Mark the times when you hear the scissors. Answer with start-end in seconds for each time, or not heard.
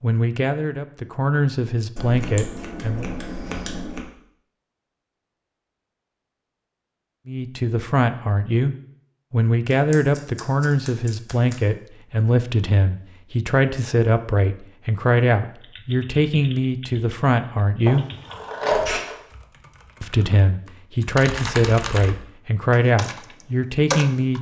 1.9-4.1, 9.7-11.6, 17.9-19.1.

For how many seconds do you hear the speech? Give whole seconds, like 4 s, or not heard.
18 s.